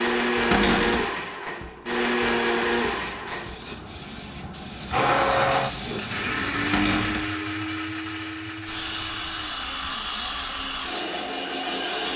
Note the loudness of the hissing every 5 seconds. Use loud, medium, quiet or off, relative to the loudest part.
medium, loud, loud.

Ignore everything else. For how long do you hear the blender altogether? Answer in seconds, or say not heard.
12 s.